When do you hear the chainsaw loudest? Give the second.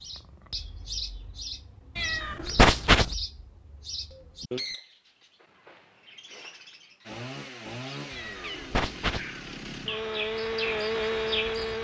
11 s.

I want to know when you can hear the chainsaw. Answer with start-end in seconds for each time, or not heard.
7.0-11.7.